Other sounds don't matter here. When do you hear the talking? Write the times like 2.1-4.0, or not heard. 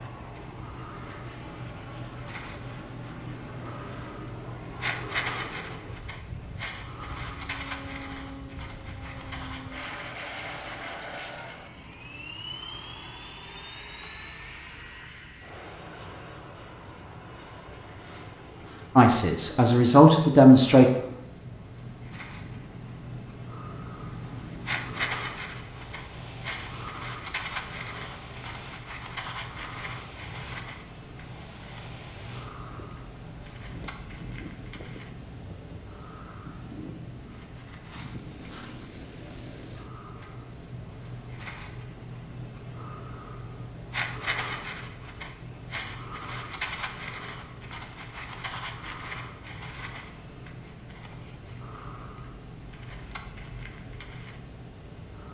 18.9-20.9.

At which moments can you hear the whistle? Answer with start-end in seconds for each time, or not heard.
not heard.